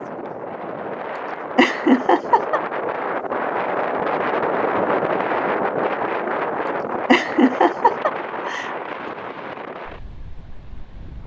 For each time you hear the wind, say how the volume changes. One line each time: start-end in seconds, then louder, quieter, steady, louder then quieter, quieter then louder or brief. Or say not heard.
0.0-11.2 louder then quieter.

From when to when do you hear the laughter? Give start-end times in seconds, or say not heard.
1.6-2.6, 7.0-8.8.